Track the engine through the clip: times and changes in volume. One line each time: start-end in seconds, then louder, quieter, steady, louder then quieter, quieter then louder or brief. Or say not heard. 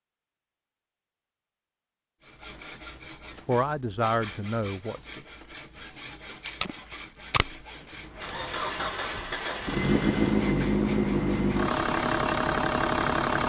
8.2-13.4 louder.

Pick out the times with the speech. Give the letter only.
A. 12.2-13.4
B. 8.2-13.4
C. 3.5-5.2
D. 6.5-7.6
C.